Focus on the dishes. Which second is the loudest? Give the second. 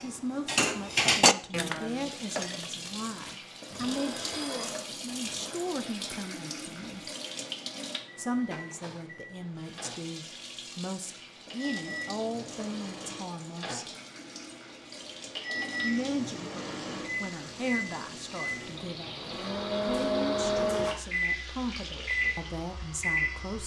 1 s.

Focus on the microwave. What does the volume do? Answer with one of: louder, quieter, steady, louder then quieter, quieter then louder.
louder.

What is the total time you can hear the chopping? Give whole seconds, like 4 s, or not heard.
not heard.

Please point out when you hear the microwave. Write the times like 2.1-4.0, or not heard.
8.0-23.6.